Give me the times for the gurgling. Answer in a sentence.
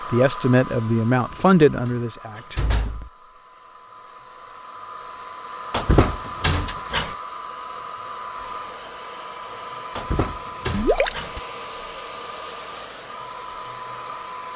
The gurgling can be heard from 10.7 to 11.2 s.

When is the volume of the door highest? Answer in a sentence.
The volume of the door peaks at 6 seconds.